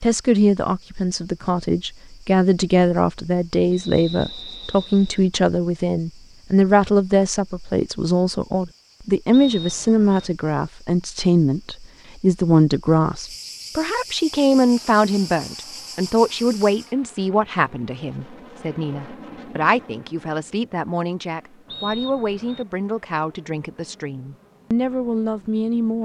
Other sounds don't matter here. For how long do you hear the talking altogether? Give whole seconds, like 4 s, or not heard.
26 s.